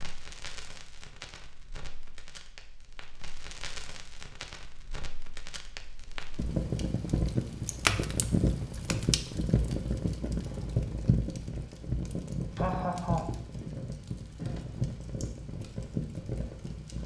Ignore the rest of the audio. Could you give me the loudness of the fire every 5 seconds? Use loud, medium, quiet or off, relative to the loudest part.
quiet, loud, loud, medium.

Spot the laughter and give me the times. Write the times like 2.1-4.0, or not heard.
12.6-13.4.